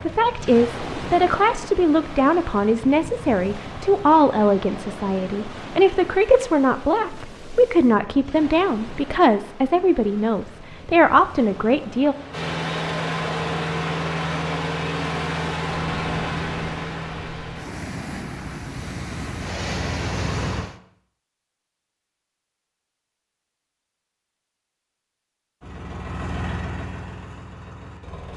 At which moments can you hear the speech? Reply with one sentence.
The speech can be heard from 0.1 to 12.2 s.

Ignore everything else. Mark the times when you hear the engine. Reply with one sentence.
The engine can be heard from 12.3 to 20.6 s and from 25.6 to 28.3 s.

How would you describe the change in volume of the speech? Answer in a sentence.
The volume of the speech stays about the same.